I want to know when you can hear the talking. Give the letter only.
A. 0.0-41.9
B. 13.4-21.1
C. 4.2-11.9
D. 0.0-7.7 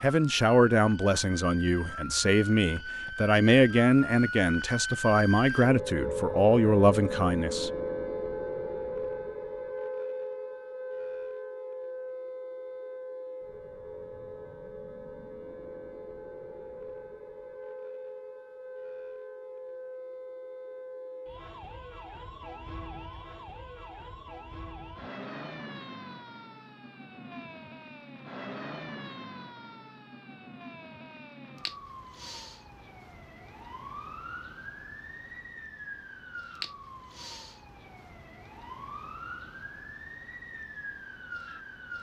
D.